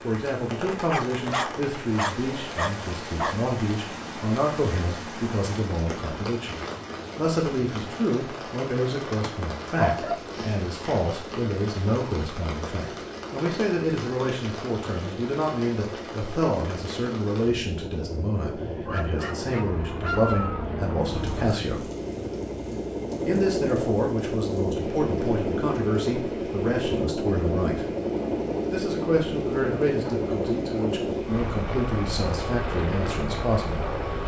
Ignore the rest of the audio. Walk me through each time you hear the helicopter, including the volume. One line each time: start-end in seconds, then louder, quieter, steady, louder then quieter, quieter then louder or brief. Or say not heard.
0.0-34.2 louder.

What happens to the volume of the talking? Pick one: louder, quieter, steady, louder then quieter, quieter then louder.
steady.